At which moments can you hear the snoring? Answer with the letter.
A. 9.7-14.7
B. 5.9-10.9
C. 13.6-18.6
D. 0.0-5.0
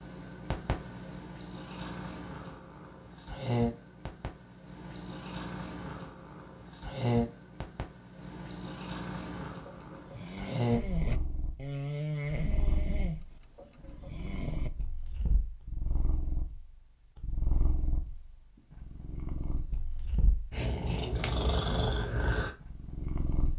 A.